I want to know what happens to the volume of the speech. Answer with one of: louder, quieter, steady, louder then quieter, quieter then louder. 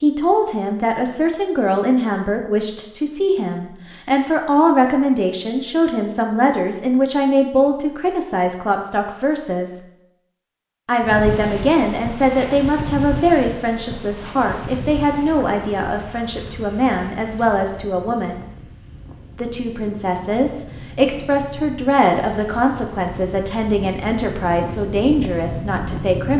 steady.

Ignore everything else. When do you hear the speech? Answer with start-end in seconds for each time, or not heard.
0.0-9.8, 10.8-18.4, 19.4-26.3.